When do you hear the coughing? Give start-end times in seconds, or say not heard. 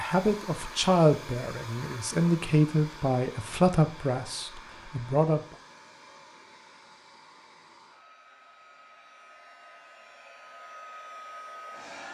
not heard.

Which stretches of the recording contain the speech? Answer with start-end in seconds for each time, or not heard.
0.0-5.4.